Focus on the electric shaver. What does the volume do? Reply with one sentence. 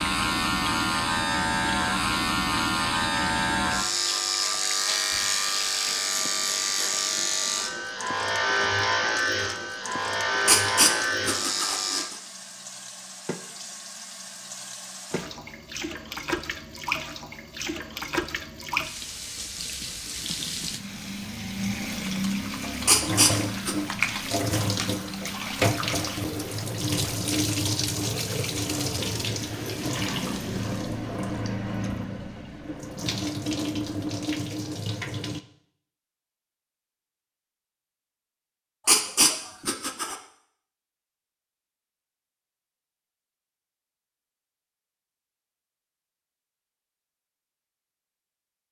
The loudness of the electric shaver stays about the same.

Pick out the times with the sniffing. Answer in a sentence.
The sniffing can be heard from 10.4 to 12.2 s, from 22.9 to 23.8 s and from 38.9 to 40.1 s.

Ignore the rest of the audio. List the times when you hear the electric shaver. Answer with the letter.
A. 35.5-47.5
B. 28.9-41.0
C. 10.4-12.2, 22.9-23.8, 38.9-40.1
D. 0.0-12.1
D.